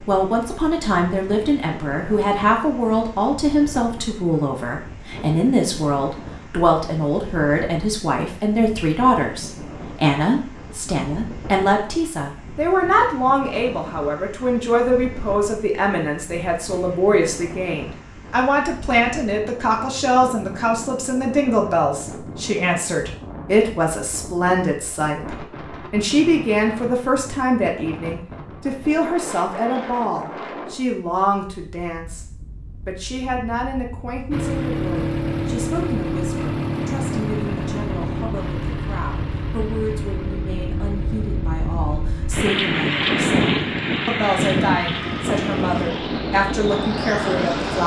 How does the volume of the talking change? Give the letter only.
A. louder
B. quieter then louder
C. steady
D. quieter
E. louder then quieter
D.